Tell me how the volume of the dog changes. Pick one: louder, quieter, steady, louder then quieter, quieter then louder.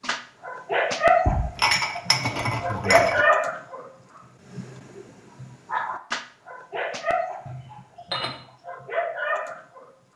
quieter.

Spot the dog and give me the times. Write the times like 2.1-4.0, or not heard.
0.0-3.9, 4.5-9.9.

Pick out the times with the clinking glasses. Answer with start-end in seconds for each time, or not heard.
1.2-3.2, 7.5-8.4.